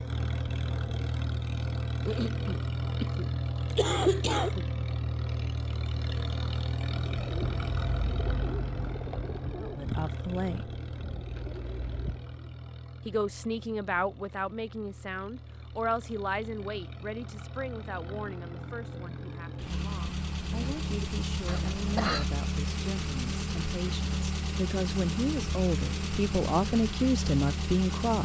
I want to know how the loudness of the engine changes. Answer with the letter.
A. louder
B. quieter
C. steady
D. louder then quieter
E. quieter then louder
E.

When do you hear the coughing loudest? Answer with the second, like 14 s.
4 s.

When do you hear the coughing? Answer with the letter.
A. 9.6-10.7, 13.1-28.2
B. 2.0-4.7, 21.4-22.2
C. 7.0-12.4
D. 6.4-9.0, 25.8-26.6
B.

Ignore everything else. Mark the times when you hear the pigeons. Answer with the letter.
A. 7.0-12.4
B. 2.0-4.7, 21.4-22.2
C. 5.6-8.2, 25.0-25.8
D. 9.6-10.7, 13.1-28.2
A.